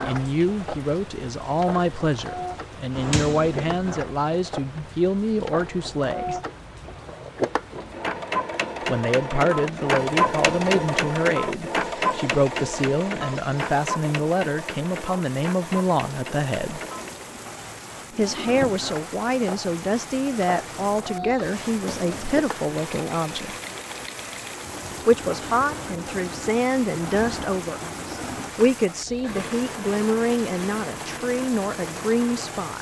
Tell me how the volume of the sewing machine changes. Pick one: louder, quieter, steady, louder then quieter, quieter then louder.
louder then quieter.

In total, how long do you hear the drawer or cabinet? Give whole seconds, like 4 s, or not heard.
2 s.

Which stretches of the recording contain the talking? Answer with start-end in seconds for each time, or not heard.
0.0-6.3, 8.8-16.8, 18.1-23.6, 24.9-32.7.